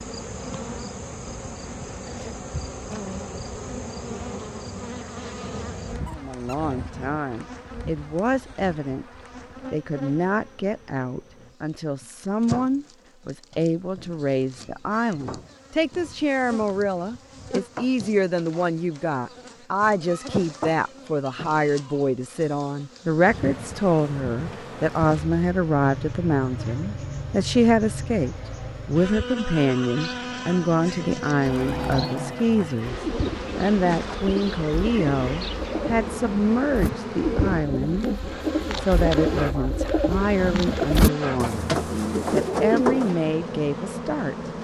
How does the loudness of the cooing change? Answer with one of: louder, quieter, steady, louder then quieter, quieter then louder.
louder.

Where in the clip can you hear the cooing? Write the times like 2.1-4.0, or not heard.
31.4-43.1.